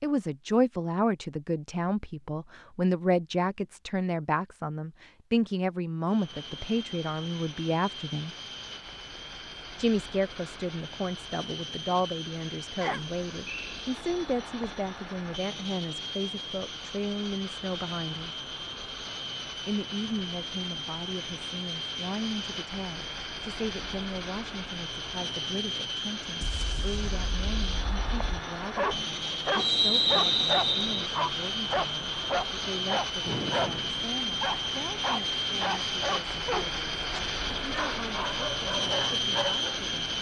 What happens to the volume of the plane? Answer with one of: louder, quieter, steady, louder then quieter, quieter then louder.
louder.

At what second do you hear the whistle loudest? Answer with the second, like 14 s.
30 s.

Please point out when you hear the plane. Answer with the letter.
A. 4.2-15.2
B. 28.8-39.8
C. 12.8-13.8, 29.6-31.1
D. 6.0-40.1
D.